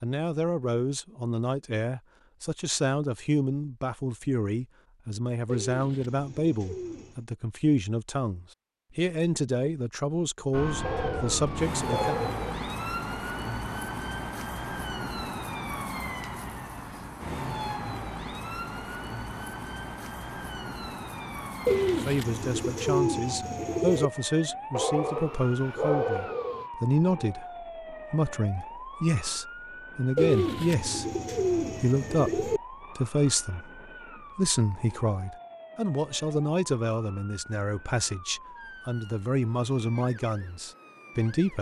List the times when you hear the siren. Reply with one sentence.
The siren can be heard from 10.5 to 41.5 s.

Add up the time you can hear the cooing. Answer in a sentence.
You can hear the cooing for 7 seconds altogether.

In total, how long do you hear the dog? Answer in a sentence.
The dog can be heard for 4 seconds in total.